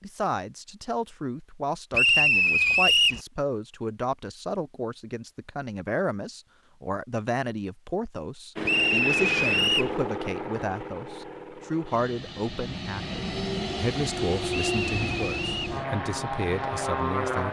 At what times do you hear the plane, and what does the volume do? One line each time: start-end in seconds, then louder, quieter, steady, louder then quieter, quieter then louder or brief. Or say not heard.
8.6-17.4 quieter then louder.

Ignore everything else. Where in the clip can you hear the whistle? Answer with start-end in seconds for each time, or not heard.
1.9-3.2, 8.7-9.9, 14.5-15.7.